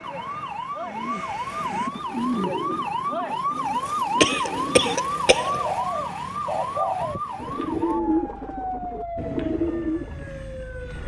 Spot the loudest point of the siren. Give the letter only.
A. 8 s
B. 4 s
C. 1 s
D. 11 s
B.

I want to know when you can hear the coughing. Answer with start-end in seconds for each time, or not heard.
4.2-5.8.